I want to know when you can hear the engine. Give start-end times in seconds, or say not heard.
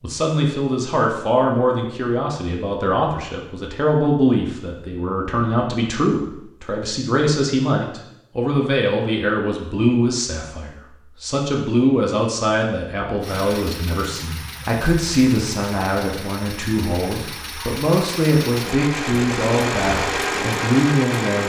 13.2-21.4.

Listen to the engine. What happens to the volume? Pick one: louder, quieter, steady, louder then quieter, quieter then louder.
louder.